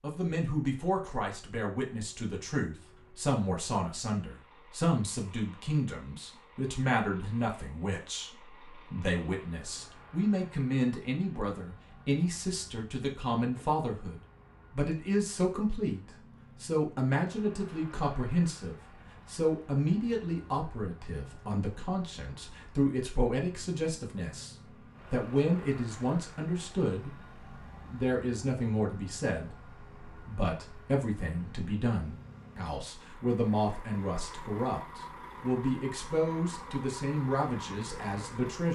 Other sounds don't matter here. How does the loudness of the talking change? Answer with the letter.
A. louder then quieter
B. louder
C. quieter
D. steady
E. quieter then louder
D.